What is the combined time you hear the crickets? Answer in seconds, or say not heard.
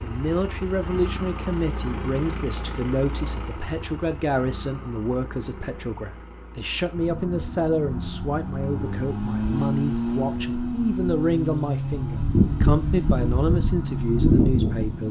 8 s.